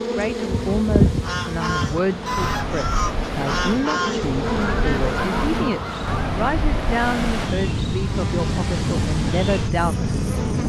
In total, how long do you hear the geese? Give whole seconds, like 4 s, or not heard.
5 s.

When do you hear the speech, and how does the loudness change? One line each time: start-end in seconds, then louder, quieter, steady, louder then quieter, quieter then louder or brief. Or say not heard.
0.1-10.4 steady.